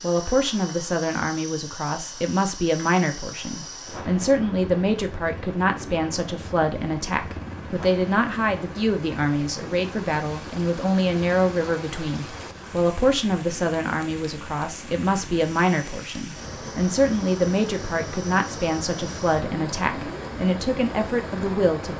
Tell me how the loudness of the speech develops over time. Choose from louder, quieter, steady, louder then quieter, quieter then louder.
steady.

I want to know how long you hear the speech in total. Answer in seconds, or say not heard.
22 s.